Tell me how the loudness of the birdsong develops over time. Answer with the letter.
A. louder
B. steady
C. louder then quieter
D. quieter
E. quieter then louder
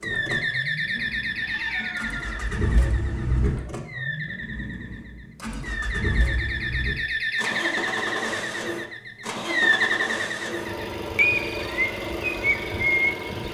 E.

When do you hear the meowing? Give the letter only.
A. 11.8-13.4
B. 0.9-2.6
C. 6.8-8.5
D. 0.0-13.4
B.